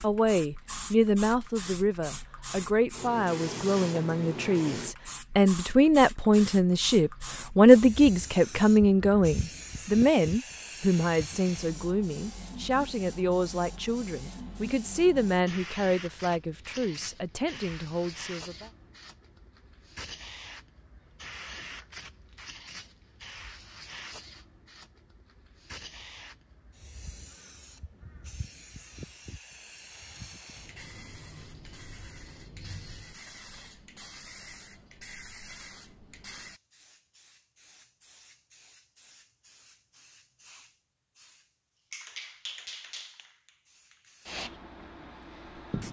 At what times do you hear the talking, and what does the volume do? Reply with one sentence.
You can hear the talking from 0.0 to 18.7 s, getting louder then quieter.